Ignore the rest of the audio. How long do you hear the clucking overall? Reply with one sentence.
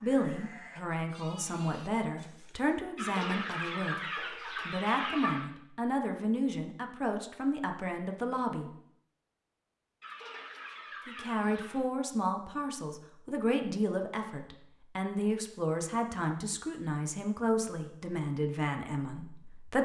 You can hear the clucking for 4 seconds altogether.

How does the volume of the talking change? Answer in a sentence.
The volume of the talking stays about the same.